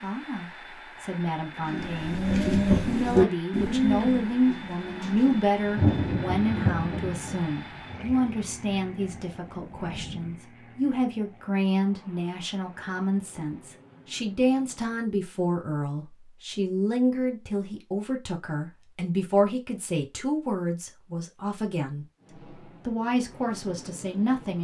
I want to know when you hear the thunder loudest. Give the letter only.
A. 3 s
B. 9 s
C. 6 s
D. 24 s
C.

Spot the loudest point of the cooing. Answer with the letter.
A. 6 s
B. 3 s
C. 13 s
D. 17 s
B.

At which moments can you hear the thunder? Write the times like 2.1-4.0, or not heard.
5.7-10.3.